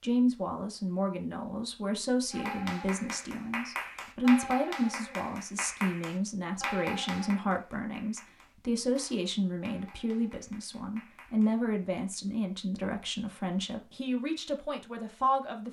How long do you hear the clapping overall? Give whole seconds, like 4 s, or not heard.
9 s.